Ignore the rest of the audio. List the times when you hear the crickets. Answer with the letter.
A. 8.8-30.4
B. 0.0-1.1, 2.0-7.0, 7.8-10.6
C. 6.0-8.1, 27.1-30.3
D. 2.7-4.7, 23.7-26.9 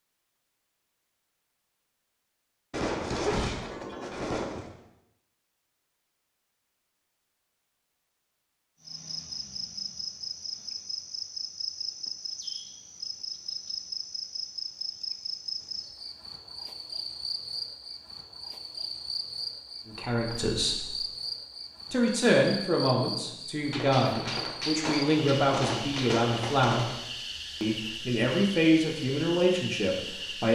A.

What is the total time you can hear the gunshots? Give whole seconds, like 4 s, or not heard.
5 s.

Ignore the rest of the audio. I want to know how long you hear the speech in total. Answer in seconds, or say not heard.
9 s.